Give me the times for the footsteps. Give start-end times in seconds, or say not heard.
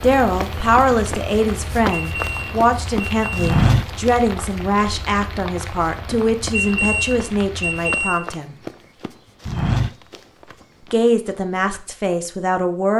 0.0-11.7.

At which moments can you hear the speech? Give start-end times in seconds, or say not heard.
0.0-8.6, 10.9-12.9.